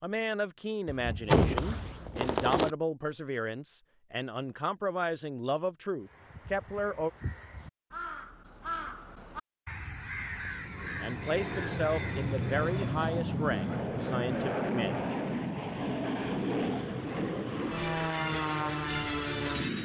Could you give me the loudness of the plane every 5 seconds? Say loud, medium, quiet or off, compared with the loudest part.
off, off, loud, loud.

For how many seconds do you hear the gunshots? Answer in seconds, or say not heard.
2 s.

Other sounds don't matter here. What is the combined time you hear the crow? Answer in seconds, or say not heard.
7 s.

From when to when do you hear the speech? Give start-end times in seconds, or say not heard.
0.0-7.1, 11.0-15.0.